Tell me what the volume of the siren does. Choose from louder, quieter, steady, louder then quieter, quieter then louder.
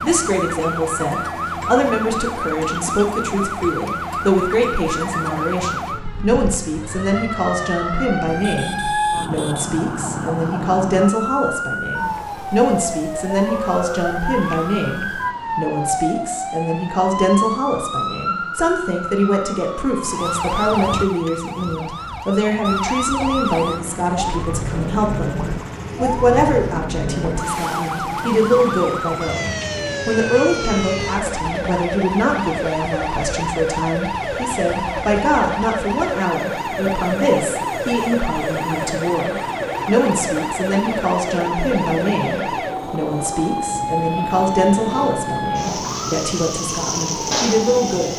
steady.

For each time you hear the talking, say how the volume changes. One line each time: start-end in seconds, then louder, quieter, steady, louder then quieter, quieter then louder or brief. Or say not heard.
0.0-48.1 steady.